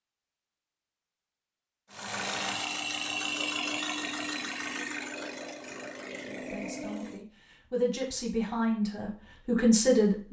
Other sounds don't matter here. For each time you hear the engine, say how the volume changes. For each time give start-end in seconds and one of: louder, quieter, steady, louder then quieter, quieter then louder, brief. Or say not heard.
1.9-7.2 quieter.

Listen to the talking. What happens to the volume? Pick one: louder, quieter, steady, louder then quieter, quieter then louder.
louder.